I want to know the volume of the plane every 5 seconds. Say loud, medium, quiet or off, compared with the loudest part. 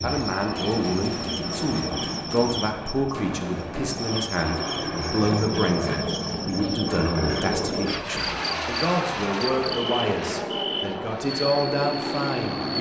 medium, loud, loud.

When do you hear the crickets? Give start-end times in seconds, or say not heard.
0.0-12.7.